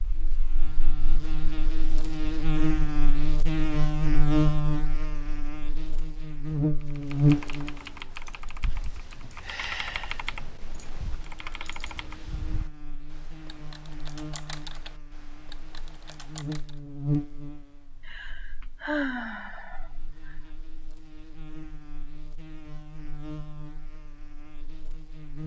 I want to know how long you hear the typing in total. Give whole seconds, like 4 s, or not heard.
10 s.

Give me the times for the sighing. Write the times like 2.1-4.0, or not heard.
9.3-10.3, 18.1-20.4.